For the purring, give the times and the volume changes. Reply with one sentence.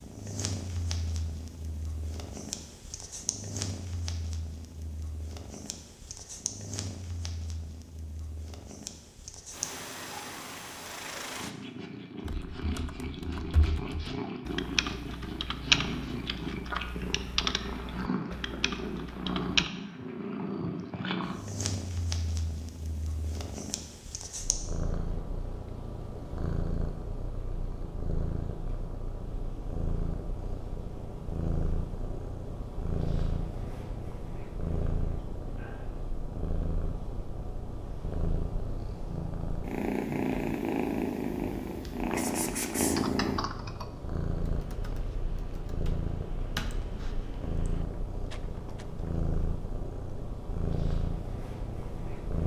You can hear the purring from 0.0 to 52.4 s, getting louder.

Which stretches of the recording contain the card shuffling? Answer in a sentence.
You can hear the card shuffling from 48.3 to 48.9 s.